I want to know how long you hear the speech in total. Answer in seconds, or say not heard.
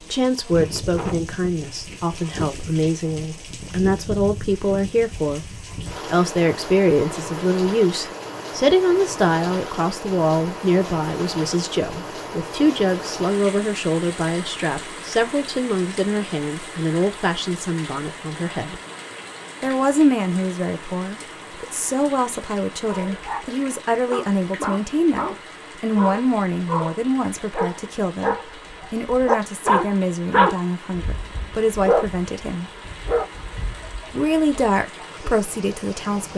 34 s.